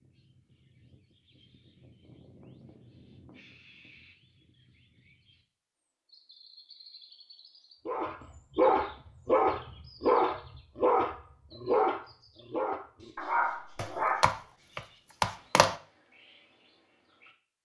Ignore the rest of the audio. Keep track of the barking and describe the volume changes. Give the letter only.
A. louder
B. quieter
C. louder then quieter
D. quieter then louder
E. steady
B.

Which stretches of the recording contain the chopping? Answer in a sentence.
The chopping can be heard from 13.8 to 15.8 s.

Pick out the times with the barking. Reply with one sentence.
You can hear the barking from 7.8 to 14.3 s.